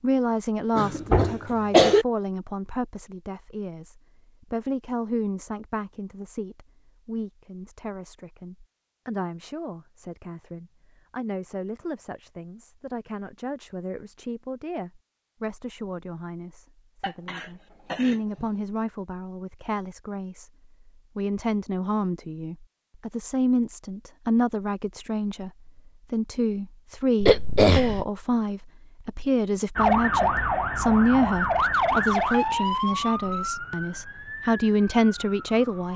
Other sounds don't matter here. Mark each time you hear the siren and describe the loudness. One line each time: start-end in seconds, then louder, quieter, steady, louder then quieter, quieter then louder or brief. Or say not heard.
29.8-35.9 quieter.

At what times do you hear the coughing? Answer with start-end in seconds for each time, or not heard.
0.8-2.0, 17.0-18.5, 27.2-28.1.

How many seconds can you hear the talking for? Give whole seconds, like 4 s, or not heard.
36 s.